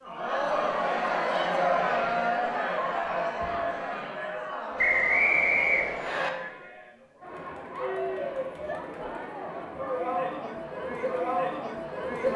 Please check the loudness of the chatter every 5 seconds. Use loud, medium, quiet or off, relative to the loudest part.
loud, medium, loud.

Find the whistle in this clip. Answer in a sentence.
You can hear the whistle from 4.8 to 6.3 s.